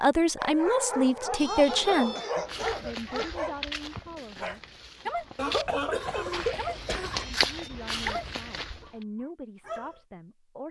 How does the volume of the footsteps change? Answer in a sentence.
The volume of the footsteps goes down, then up.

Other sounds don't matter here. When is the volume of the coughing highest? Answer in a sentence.
The loudest moment of the coughing is at 6 seconds.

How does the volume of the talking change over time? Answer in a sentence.
The volume of the talking goes down.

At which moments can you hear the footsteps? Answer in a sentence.
You can hear the footsteps from 2.5 to 8.9 s.